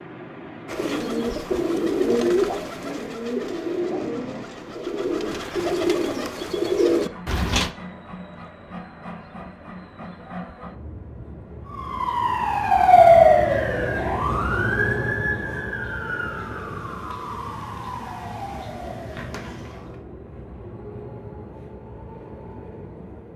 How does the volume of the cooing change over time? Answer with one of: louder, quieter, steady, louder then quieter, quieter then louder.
quieter then louder.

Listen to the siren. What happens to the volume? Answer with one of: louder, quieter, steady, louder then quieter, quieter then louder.
quieter.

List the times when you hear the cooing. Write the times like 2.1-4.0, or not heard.
0.7-7.7.